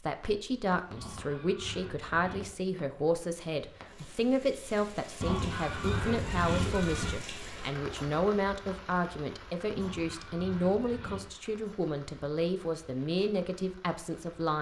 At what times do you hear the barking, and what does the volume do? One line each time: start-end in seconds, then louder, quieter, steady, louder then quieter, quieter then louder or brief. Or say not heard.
not heard.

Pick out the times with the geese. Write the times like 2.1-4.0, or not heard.
0.9-2.5, 5.2-7.2, 9.8-11.3.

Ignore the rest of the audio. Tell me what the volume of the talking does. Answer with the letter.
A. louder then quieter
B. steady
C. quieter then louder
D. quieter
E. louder
B.